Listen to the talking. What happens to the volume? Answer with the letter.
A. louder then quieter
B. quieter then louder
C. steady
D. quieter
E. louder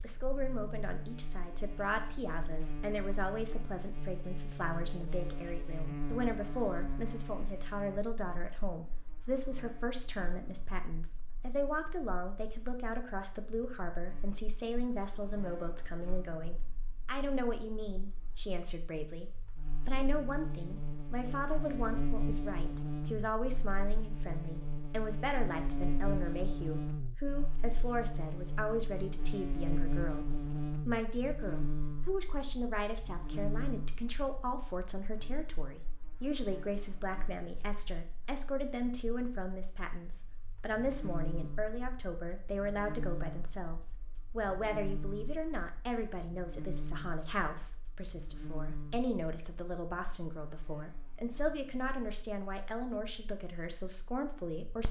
C.